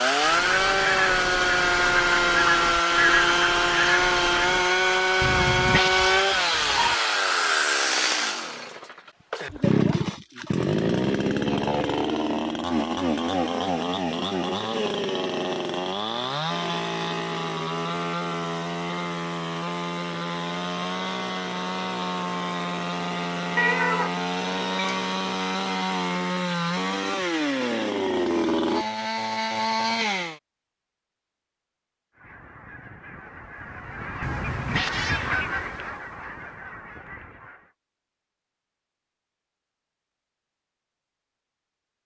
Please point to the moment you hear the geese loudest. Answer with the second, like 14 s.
3 s.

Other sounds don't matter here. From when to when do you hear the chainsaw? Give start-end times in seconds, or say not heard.
0.0-30.4.